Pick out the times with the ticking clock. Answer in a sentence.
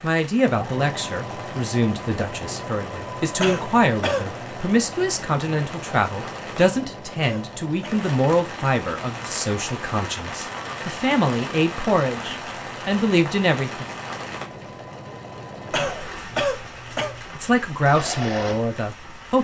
You can't hear the ticking clock here.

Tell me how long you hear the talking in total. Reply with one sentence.
The talking can be heard for 16 seconds in total.